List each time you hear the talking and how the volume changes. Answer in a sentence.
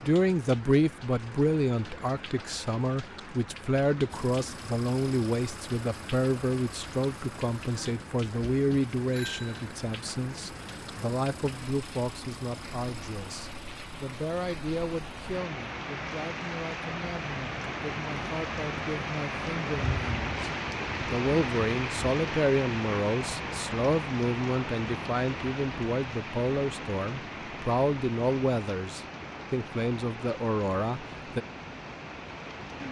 You can hear the talking from 0.0 to 31.4 s, getting quieter then louder.